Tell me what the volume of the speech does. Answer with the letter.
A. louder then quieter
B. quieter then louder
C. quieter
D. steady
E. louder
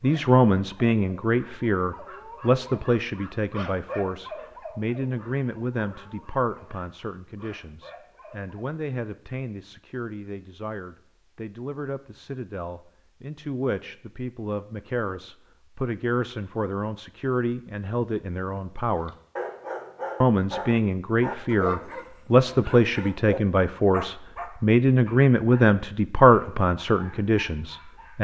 B.